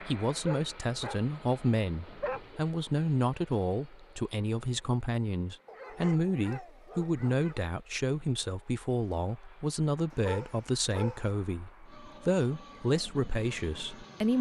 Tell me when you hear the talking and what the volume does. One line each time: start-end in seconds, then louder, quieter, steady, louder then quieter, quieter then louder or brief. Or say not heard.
0.0-14.3 steady.